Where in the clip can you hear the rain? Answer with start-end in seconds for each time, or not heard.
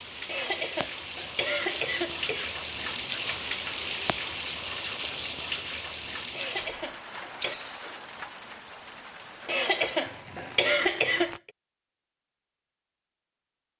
0.0-11.4.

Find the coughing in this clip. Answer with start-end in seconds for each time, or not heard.
0.2-2.5, 6.3-7.5, 9.4-11.5.